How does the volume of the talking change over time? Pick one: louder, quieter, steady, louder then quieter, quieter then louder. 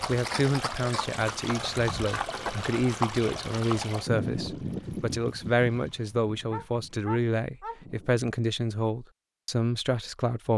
steady.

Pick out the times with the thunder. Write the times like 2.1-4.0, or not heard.
not heard.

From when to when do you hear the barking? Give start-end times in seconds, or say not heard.
6.5-7.8.